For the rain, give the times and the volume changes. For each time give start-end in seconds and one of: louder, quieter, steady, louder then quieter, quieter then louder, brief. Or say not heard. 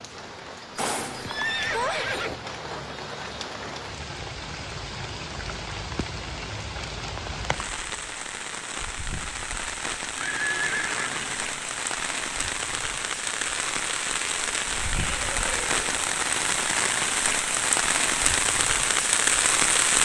0.0-20.0 louder.